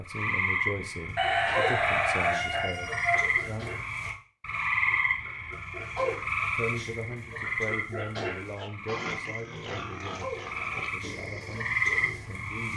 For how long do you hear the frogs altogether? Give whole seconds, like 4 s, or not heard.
13 s.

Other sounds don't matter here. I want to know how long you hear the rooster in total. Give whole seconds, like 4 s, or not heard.
2 s.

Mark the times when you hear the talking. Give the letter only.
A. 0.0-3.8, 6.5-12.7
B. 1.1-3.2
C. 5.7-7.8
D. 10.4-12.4
A.